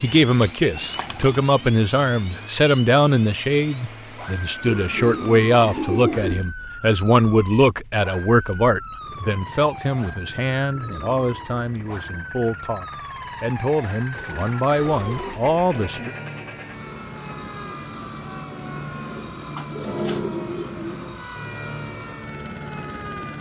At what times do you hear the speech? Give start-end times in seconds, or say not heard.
0.0-16.1.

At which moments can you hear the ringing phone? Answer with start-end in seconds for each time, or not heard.
not heard.